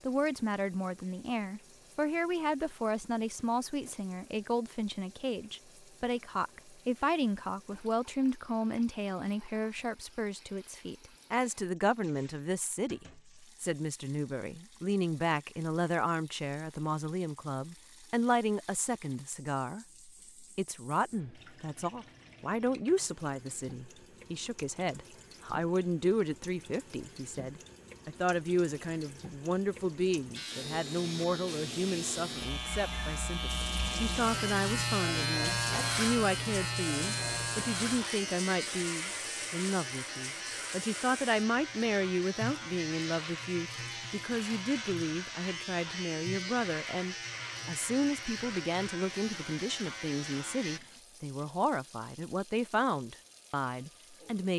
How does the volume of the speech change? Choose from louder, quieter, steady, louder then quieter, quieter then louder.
steady.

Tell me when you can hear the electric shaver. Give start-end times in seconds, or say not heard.
30.4-50.8.